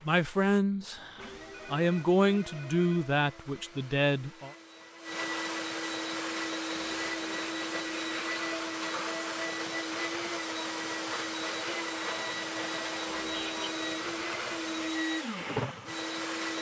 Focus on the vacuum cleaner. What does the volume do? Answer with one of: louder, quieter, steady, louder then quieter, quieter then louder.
louder.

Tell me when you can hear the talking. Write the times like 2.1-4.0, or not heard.
0.1-4.5.